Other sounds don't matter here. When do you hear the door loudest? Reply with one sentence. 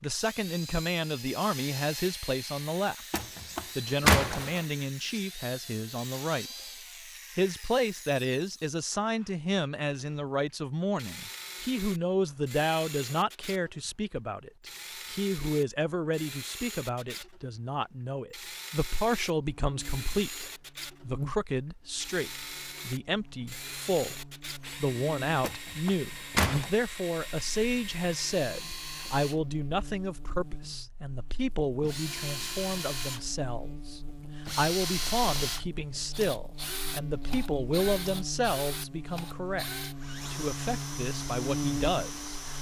The volume of the door peaks at 4 seconds.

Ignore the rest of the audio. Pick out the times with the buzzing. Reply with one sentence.
The buzzing can be heard from 19.4 to 42.5 s.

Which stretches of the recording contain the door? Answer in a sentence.
The door can be heard from 3.1 to 4.6 s and from 25.4 to 26.7 s.